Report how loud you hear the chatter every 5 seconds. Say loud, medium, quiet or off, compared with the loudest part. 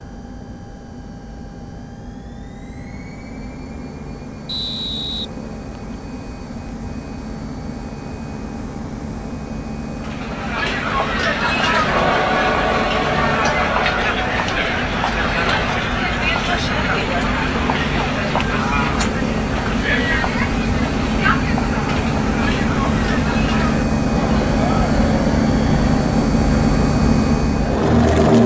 off, off, loud, loud, medium, medium.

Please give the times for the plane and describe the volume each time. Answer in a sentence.
You can hear the plane from 0.0 to 28.4 s, getting louder.